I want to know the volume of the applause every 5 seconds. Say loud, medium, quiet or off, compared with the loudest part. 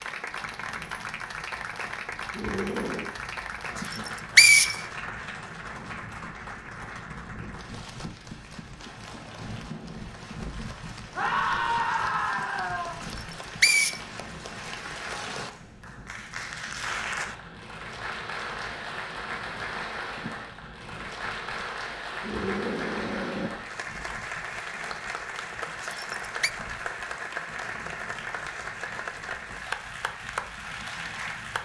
loud, medium, medium, loud, loud, loud, loud.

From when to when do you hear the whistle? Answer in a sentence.
The whistle can be heard from 3.9 to 4.8 s, from 13.1 to 14.0 s and from 25.8 to 26.5 s.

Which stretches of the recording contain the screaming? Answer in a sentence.
You can hear the screaming from 2.3 to 3.1 s, from 11.2 to 12.9 s and from 22.2 to 23.6 s.